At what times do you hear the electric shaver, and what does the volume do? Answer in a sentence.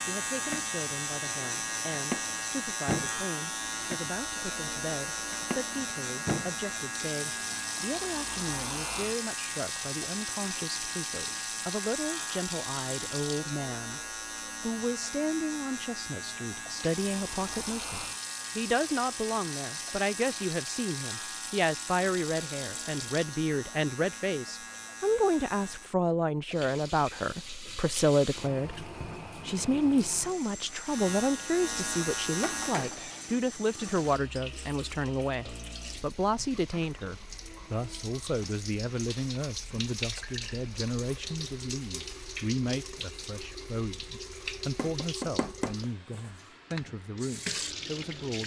You can hear the electric shaver from 0.0 to 25.9 s, getting quieter; and briefly from 30.8 to 33.0 s.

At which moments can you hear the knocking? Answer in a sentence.
You can hear the knocking from 44.8 to 46.3 s.